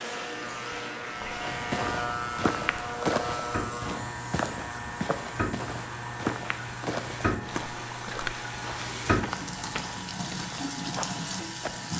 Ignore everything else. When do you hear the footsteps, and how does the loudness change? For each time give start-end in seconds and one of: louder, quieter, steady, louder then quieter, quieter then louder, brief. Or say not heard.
1.4-11.8 quieter.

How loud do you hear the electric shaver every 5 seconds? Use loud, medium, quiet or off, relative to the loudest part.
loud, medium, medium.